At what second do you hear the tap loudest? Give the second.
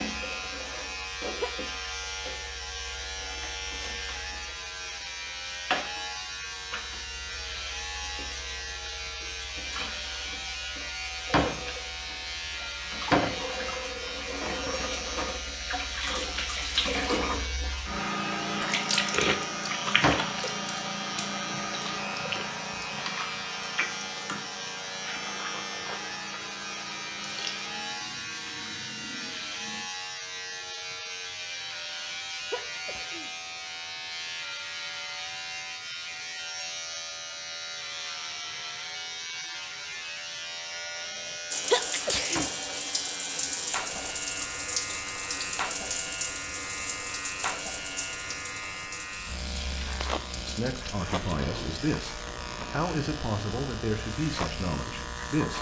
19 s.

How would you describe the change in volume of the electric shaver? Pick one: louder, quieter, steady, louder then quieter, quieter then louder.
steady.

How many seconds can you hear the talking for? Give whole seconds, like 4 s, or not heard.
5 s.